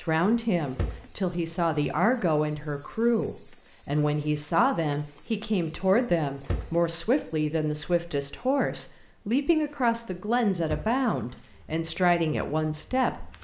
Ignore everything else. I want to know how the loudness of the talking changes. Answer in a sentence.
The loudness of the talking stays about the same.